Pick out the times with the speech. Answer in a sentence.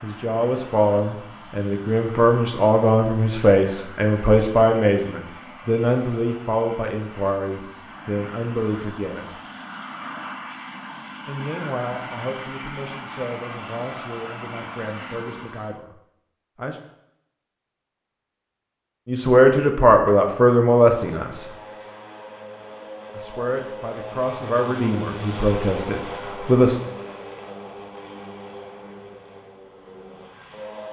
You can hear the speech from 0.0 to 9.3 s, from 11.2 to 16.8 s, from 19.1 to 21.5 s and from 23.1 to 26.8 s.